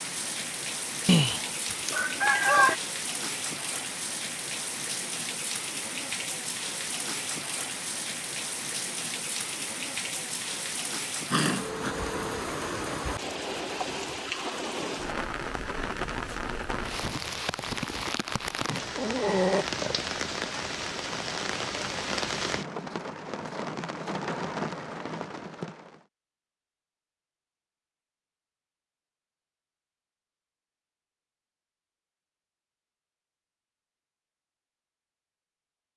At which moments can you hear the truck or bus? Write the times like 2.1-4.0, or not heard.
not heard.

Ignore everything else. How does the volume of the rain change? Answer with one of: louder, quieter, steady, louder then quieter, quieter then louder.
steady.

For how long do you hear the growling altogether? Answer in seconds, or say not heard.
2 s.